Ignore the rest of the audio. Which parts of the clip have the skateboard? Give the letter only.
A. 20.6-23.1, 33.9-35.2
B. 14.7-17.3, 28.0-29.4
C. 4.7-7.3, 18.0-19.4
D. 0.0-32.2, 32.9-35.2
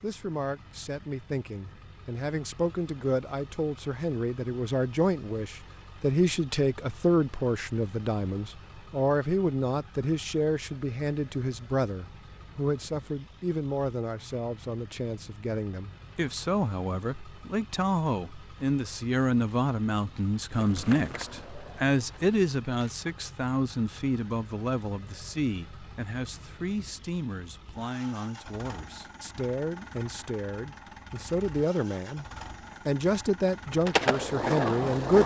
A.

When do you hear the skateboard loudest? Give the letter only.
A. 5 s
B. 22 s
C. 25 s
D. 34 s
D.